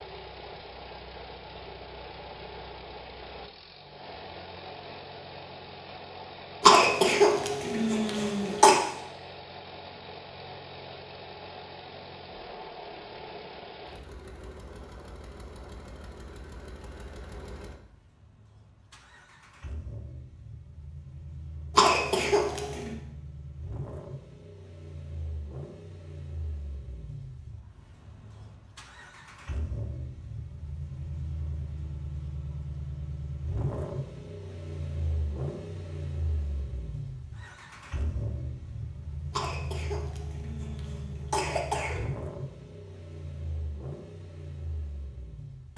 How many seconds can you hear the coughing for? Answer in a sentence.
You can hear the coughing for 6 seconds altogether.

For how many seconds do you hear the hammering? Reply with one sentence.
You can't hear the hammering here.